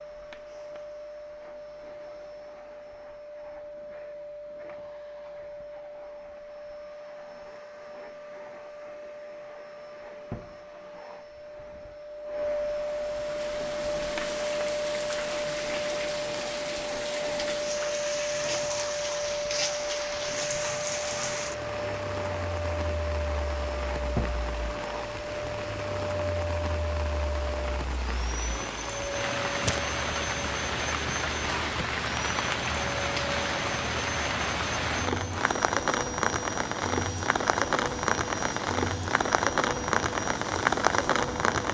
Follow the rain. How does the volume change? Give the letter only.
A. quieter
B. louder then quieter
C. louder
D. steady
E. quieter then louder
C.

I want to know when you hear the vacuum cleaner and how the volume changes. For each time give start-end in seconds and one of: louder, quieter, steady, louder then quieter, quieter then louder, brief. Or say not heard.
0.0-41.6 louder then quieter.